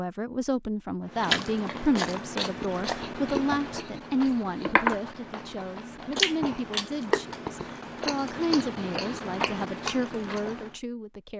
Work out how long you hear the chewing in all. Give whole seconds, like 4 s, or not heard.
10 s.